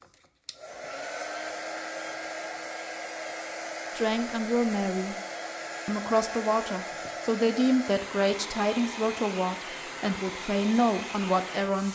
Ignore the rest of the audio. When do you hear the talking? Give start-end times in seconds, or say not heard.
4.0-5.2, 5.8-11.9.